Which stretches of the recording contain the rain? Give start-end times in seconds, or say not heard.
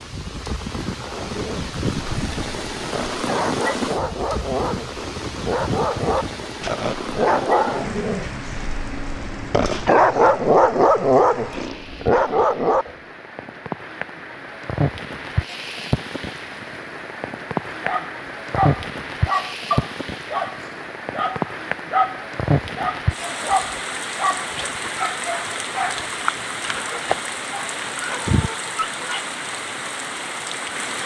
0.0-31.0.